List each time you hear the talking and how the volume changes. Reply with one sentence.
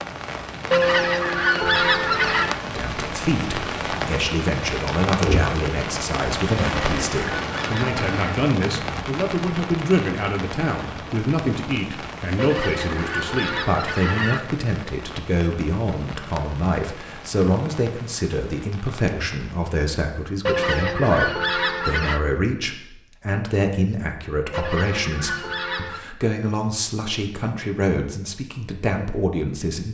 You can hear the talking from 2.8 to 29.8 s, at a steady volume.